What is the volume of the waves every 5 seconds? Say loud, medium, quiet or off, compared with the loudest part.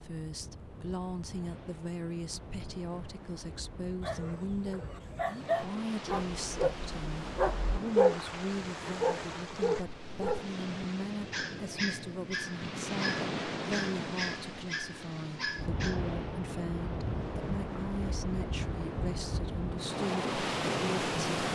quiet, medium, medium, medium, loud.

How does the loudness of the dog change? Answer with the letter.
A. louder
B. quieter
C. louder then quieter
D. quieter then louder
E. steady
C.